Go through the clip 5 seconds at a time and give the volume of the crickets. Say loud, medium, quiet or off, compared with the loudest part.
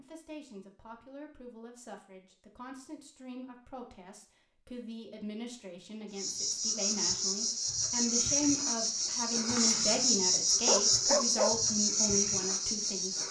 off, loud, loud.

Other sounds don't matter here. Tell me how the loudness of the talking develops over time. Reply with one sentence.
The loudness of the talking goes up.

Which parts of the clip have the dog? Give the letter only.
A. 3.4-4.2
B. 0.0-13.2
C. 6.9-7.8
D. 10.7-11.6
D.